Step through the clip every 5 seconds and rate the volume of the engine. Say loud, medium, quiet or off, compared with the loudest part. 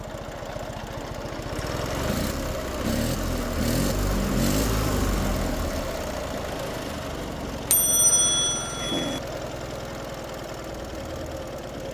loud, loud, medium.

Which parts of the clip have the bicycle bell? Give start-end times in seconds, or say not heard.
7.7-9.2.